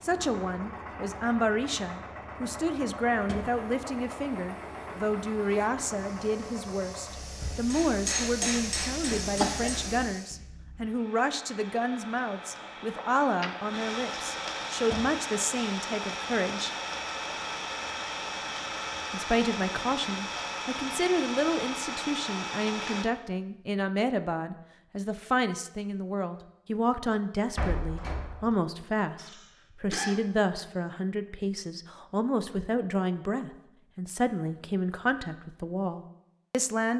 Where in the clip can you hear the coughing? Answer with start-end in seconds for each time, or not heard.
8.2-9.8, 12.9-13.8, 29.1-30.2.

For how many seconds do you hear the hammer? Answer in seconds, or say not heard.
2 s.